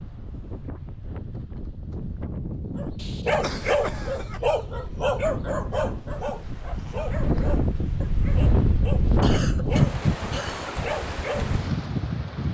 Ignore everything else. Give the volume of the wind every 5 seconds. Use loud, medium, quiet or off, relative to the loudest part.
medium, loud, loud.